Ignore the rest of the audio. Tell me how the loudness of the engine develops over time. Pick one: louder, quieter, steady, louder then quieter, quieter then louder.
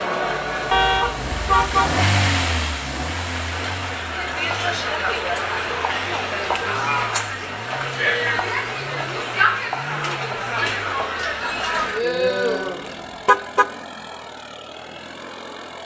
quieter.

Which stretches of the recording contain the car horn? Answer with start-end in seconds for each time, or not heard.
0.7-2.0, 13.2-13.7.